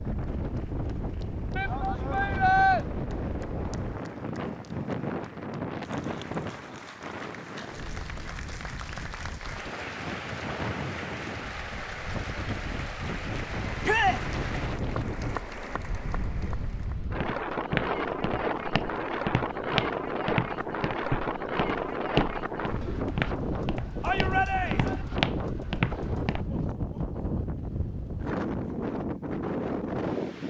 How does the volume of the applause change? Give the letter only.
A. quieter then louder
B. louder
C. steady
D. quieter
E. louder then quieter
B.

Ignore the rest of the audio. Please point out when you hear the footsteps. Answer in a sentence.
You can hear the footsteps from 17.1 to 26.4 s.